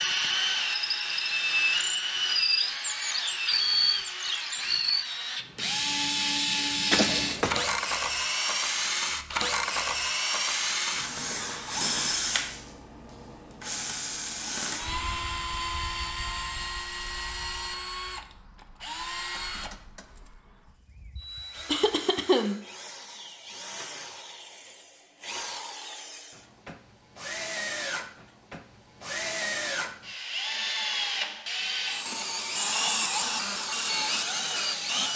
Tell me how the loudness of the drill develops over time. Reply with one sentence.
The volume of the drill goes down, then up.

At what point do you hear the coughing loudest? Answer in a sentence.
The loudest moment of the coughing is at 22 seconds.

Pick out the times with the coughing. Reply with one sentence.
The coughing can be heard from 7.0 to 7.8 s and from 21.6 to 22.6 s.